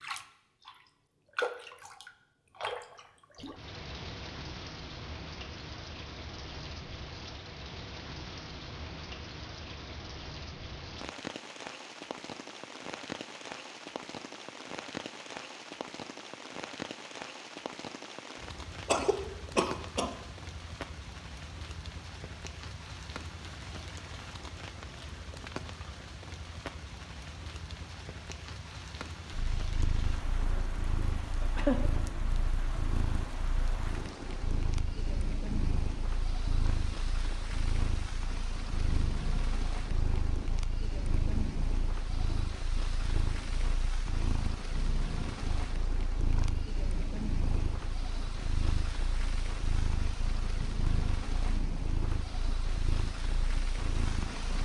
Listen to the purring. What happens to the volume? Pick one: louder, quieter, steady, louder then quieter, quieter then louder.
steady.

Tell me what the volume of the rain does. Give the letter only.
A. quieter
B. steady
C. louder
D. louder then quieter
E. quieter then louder
B.